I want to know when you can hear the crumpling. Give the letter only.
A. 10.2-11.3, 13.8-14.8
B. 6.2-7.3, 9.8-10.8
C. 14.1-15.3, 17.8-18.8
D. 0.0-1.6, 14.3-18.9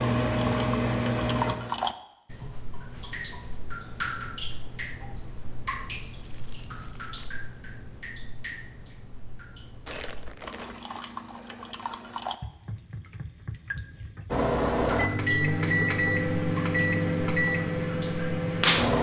B.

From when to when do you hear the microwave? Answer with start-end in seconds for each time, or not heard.
0.0-1.6, 14.3-18.9.